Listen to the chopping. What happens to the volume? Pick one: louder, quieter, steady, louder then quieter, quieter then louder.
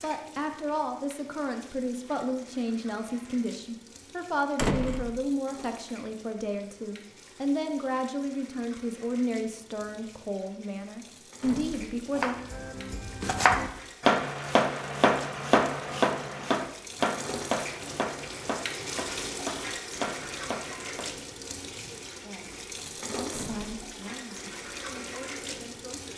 quieter.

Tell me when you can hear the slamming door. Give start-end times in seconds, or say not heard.
4.5-5.2, 11.4-12.0, 23.3-23.9.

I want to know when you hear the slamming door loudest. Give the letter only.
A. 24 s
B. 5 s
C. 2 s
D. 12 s
B.